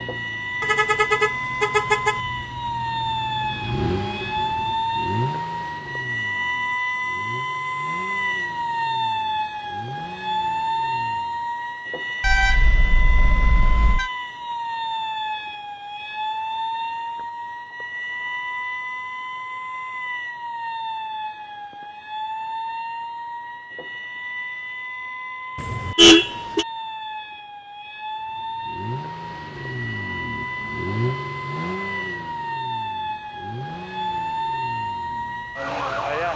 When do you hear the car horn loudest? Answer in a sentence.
The volume of the car horn peaks at 26 seconds.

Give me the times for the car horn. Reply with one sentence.
You can hear the car horn from 0.6 to 2.1 s, from 12.2 to 14.1 s and from 25.6 to 26.6 s.